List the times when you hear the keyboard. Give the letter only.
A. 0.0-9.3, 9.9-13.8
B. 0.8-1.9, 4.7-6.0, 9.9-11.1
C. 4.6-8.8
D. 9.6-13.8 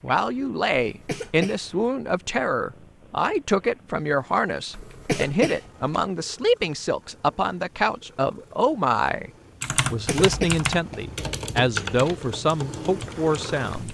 D.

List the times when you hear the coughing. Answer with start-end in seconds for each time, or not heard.
0.8-1.9, 4.7-6.0, 9.9-11.1.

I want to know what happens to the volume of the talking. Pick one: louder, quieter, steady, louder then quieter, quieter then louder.
steady.